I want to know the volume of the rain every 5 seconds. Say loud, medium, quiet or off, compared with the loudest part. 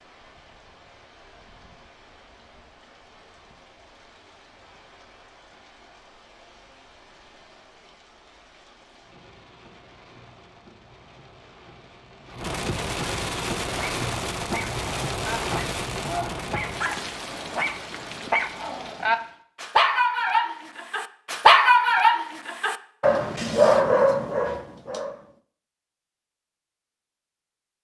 quiet, quiet, loud, loud, off, off.